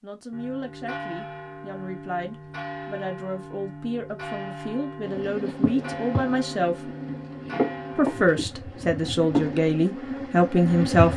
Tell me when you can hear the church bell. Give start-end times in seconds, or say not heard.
0.3-8.4.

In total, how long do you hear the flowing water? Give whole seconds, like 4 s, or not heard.
not heard.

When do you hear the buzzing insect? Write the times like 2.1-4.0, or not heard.
5.0-11.1.